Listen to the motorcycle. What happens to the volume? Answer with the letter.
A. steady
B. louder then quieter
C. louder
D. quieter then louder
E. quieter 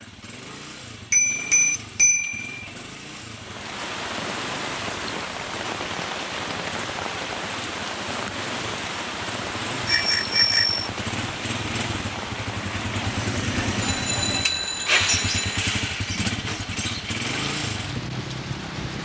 C.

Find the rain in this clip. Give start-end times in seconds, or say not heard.
3.4-19.0.